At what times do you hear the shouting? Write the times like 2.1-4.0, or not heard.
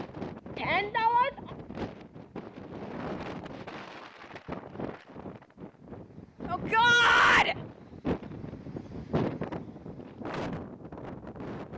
0.6-1.5, 6.5-7.5.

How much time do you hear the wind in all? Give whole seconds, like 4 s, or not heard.
12 s.